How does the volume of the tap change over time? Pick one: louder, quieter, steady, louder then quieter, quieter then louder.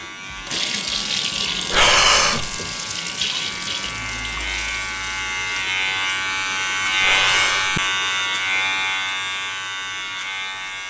quieter.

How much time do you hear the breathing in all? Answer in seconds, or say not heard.
2 s.